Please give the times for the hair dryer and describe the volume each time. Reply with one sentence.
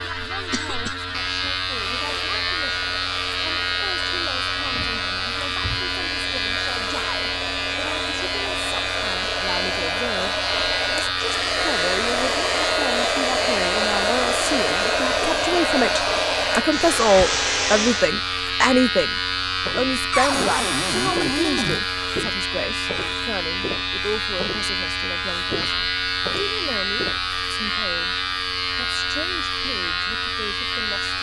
You can hear the hair dryer from 2.0 to 18.1 s, getting louder.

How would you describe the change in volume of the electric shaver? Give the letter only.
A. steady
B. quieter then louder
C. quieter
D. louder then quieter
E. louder
A.